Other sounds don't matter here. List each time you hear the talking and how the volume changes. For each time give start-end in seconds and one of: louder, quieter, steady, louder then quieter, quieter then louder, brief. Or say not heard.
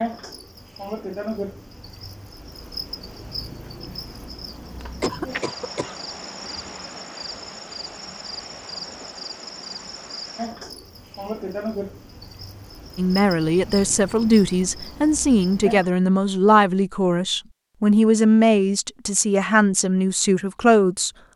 12.9-21.1 steady.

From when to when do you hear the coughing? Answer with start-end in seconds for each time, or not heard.
4.8-6.0.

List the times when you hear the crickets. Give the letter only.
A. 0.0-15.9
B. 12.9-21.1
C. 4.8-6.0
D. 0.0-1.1
A.